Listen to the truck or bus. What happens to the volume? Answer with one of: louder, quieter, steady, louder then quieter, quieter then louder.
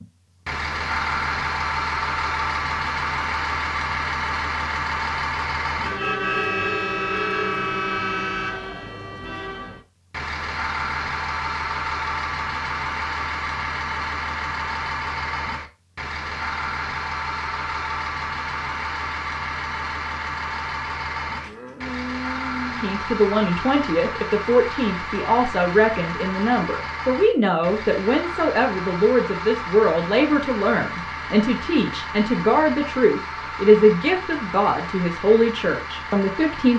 quieter.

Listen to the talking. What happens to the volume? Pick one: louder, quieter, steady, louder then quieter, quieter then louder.
steady.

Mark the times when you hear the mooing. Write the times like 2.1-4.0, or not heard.
21.4-22.9.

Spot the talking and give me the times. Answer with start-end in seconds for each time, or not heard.
22.8-36.7.